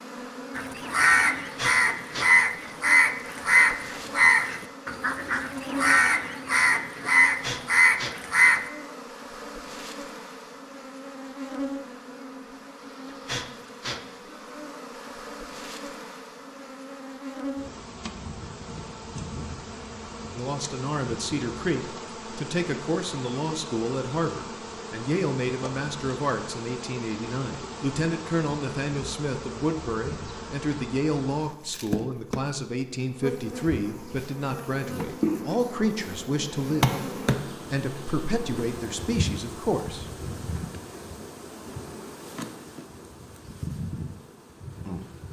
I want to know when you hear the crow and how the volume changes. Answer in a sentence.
The crow can be heard from 0.6 to 8.7 s, at a steady volume.